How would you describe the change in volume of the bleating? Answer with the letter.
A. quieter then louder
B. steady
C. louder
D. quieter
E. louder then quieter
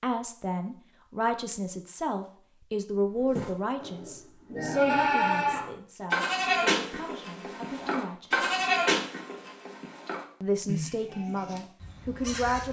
D.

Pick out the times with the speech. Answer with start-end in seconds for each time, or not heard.
0.0-8.5, 10.4-12.6.